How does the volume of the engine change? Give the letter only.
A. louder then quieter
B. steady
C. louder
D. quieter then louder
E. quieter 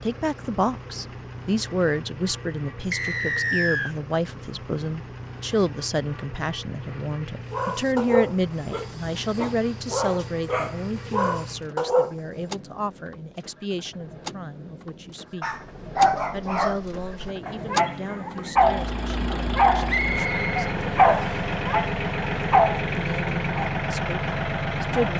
C.